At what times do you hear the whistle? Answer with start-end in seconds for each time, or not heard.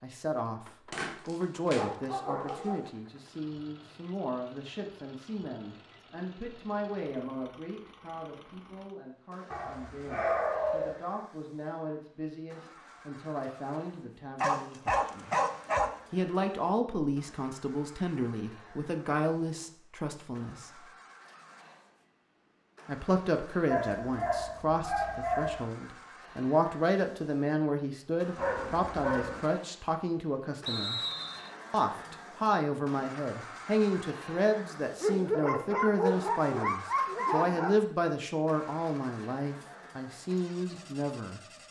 30.6-31.5.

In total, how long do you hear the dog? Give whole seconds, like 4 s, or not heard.
11 s.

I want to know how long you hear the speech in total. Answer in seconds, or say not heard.
38 s.